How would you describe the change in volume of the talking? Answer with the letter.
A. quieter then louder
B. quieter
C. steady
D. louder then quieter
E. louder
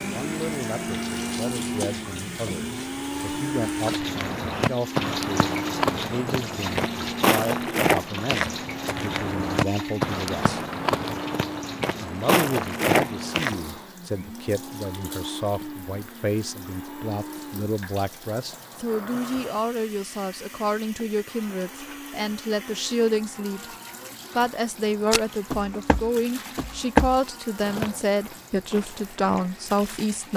E.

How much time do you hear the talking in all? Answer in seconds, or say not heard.
28 s.